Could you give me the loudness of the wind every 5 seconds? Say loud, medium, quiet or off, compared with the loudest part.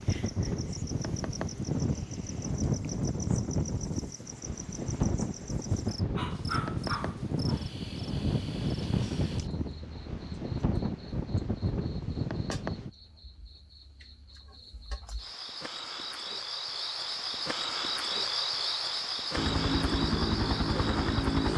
loud, loud, loud, off, off.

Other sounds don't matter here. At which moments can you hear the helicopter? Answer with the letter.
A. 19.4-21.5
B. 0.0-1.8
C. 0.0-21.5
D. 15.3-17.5
A.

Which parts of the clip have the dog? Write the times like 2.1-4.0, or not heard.
5.8-7.7.